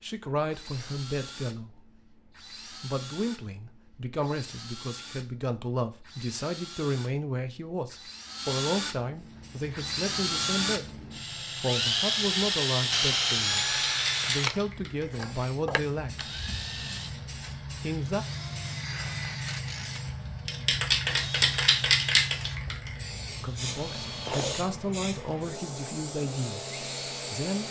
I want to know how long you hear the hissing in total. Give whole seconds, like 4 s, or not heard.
18 s.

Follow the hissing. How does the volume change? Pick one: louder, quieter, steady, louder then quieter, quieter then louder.
louder then quieter.